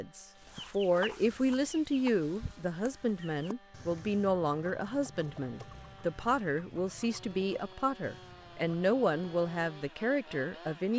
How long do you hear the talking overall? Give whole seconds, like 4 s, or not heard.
11 s.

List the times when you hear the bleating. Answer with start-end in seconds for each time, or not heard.
not heard.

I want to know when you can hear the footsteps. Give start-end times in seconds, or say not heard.
not heard.